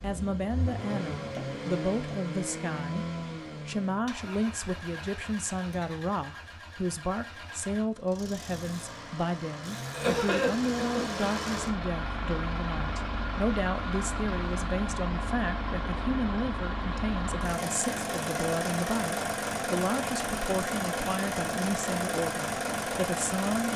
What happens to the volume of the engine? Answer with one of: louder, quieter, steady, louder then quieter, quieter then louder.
quieter then louder.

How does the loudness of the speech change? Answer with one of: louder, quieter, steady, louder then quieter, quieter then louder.
steady.